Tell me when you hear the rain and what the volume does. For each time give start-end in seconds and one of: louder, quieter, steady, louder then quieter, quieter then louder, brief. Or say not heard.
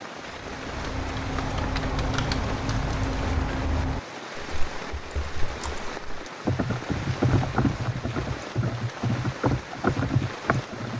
0.0-10.9 steady.